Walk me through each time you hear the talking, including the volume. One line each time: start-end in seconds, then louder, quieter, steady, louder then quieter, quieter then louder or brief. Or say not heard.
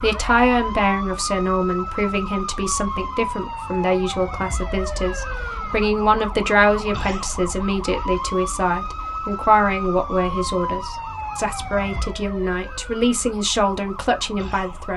0.0-14.9 steady.